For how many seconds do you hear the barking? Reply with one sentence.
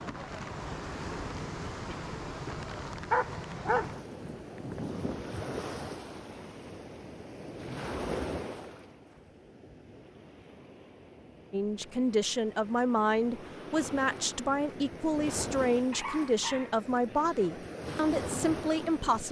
The barking can be heard for 4 seconds in total.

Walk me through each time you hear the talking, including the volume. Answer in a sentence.
You can hear the talking from 11.5 to 19.2 s, at a steady volume.